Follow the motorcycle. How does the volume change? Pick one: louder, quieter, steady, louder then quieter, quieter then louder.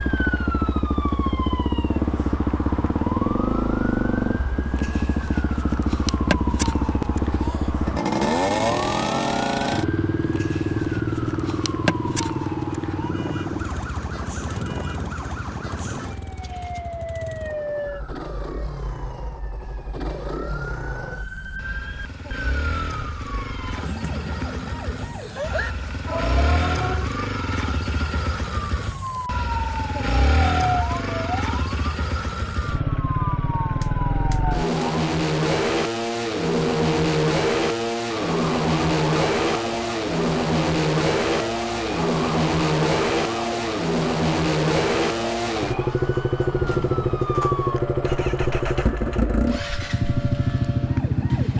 quieter then louder.